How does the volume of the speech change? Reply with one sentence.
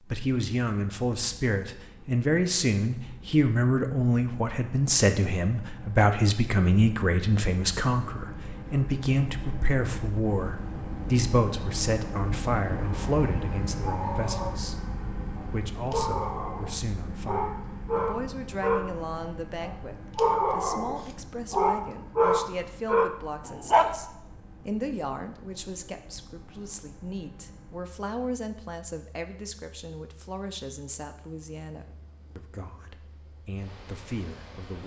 The loudness of the speech goes down.